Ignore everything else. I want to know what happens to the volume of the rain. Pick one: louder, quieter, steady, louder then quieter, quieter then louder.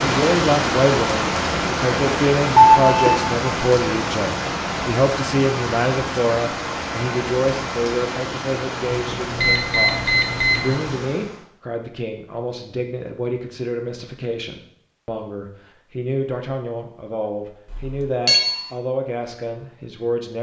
quieter.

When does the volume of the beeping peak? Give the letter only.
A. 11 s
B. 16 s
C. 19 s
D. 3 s
D.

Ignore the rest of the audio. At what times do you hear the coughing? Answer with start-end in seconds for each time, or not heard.
not heard.